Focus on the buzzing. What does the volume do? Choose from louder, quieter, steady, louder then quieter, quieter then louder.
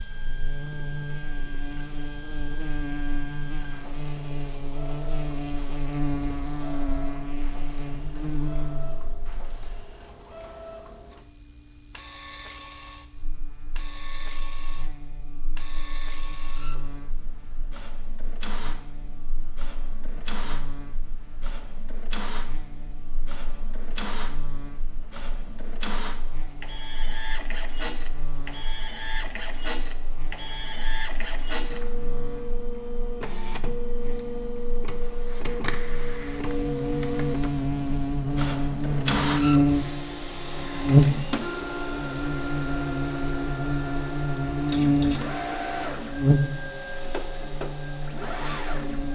quieter then louder.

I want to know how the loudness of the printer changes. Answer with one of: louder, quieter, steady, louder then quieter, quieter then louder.
louder.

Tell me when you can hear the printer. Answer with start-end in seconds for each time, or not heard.
0.0-49.0.